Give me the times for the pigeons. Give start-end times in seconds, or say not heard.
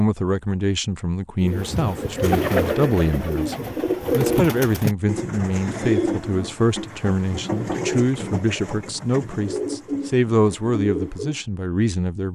1.4-11.4.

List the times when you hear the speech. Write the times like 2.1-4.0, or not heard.
0.0-12.3.